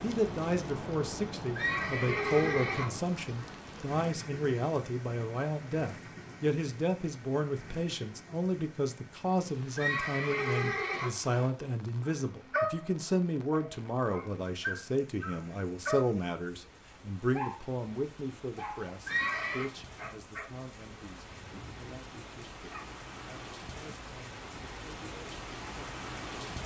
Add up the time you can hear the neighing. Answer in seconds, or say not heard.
4 s.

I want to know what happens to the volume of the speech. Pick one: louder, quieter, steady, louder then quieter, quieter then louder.
quieter.